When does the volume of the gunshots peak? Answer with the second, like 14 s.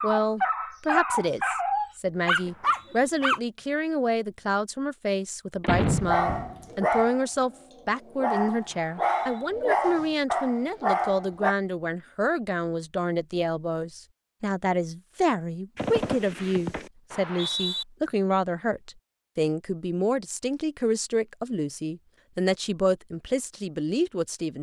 6 s.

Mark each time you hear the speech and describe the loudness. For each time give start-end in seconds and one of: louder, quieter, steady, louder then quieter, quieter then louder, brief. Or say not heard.
0.0-24.5 steady.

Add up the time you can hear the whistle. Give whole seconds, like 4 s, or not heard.
2 s.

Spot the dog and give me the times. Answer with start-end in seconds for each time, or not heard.
0.0-3.4, 5.8-11.6.